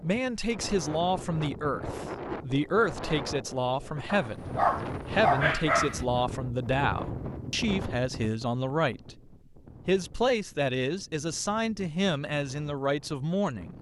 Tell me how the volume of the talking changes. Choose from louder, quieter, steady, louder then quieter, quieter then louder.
steady.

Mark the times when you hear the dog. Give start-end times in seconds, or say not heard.
4.2-6.0.